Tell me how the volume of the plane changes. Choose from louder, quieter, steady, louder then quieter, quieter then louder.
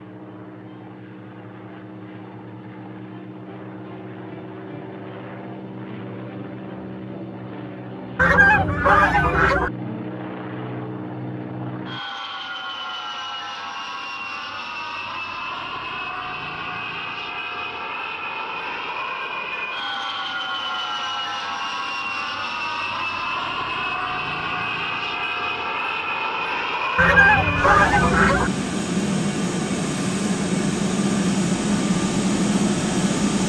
louder.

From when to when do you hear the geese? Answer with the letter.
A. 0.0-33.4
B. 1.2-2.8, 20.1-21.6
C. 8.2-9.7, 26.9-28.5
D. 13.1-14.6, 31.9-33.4
C.